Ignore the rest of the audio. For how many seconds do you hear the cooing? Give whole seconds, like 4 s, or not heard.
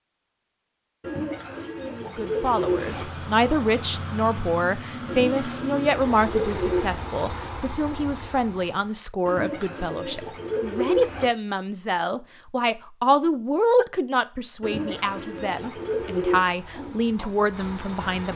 8 s.